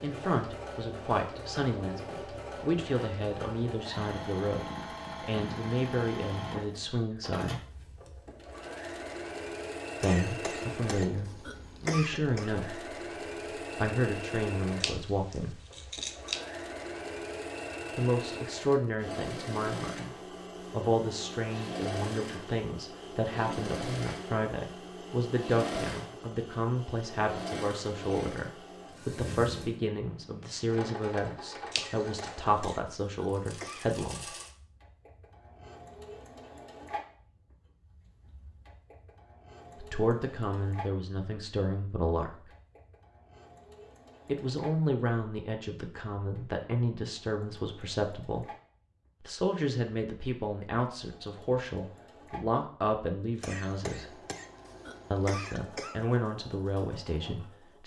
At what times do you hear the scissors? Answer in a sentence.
You can hear the scissors from 14.8 to 16.4 s and from 31.7 to 32.8 s.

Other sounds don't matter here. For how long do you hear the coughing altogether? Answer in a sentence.
The coughing can be heard for 7 seconds in total.